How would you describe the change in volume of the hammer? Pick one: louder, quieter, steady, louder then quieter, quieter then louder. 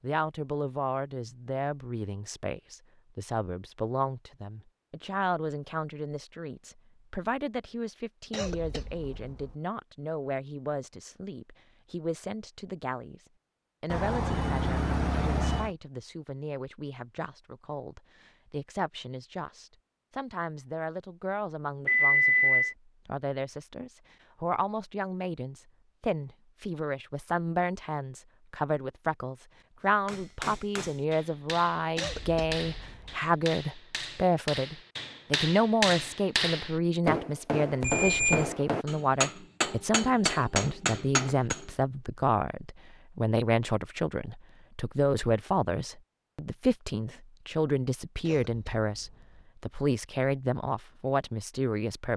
louder.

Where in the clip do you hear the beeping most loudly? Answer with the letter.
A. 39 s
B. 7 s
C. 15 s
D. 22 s
D.